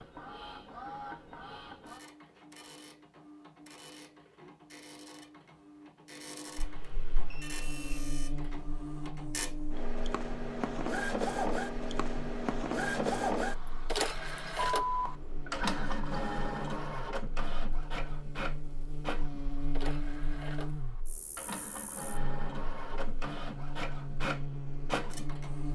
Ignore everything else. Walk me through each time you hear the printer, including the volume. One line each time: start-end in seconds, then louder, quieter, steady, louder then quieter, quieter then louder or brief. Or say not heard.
0.0-25.6 louder then quieter.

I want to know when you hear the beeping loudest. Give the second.
15 s.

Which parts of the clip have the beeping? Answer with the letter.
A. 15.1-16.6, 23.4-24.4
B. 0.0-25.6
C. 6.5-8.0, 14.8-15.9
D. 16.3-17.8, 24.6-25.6
C.